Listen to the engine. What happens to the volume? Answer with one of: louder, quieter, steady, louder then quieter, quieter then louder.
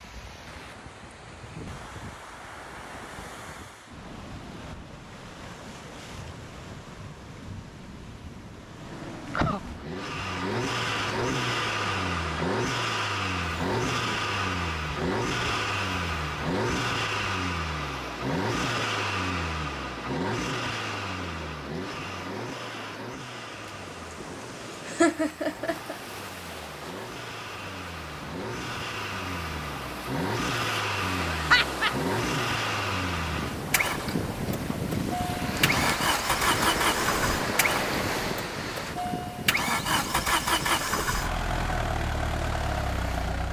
quieter then louder.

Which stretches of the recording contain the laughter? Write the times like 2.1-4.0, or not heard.
8.8-9.6, 24.9-25.9, 31.3-31.9.